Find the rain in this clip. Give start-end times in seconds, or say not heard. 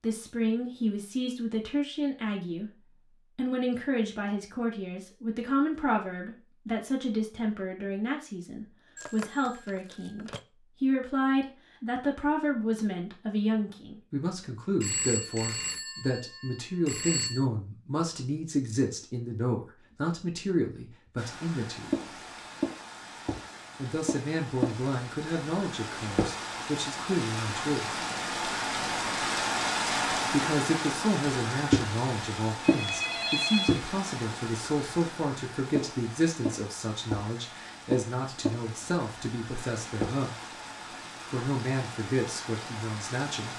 21.1-43.5.